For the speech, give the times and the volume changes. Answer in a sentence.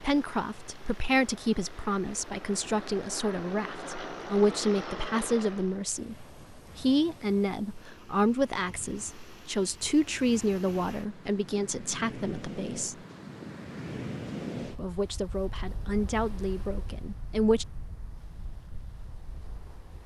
You can hear the speech from 0.0 to 12.9 s, at a steady volume; and briefly from 14.8 to 17.6 s.